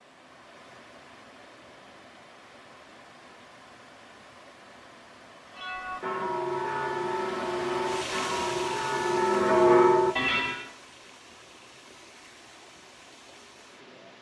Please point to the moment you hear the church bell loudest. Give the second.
10 s.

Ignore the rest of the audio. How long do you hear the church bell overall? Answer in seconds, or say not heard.
5 s.